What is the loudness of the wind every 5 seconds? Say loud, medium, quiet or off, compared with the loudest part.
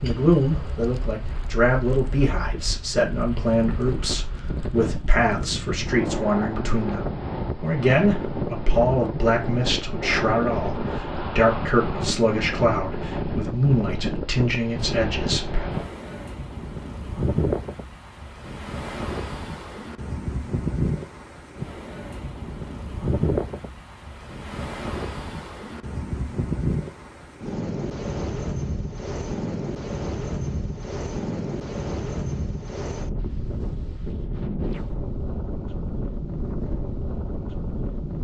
medium, loud, loud, loud, loud, loud, loud, loud.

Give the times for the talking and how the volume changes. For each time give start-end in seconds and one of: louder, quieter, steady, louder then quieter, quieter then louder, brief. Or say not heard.
0.0-15.7 steady.